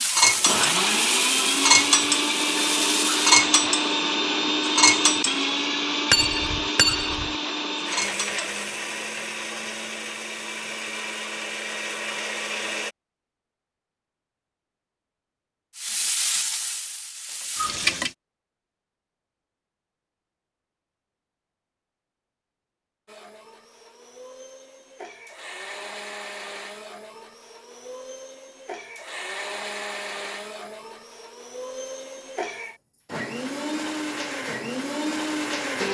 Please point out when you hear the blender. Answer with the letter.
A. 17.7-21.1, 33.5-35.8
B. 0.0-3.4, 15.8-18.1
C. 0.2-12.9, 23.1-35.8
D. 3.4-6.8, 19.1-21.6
C.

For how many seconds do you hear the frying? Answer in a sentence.
You can hear the frying for 6 seconds altogether.